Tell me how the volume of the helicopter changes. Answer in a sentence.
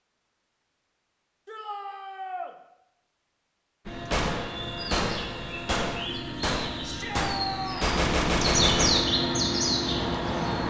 The loudness of the helicopter goes up.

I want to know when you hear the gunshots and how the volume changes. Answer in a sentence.
The gunshots can be heard from 4.1 to 9.1 s, getting louder.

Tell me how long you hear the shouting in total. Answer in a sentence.
The shouting can be heard for 2 seconds in total.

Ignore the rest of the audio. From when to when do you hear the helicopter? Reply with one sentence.
The helicopter can be heard from 3.9 to 10.6 s.